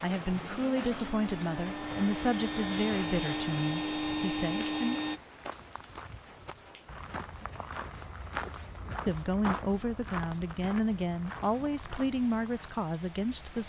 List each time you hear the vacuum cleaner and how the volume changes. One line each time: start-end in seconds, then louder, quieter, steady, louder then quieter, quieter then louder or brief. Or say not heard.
0.2-5.2 louder.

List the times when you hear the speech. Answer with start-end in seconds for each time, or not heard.
0.0-5.0, 9.1-13.6.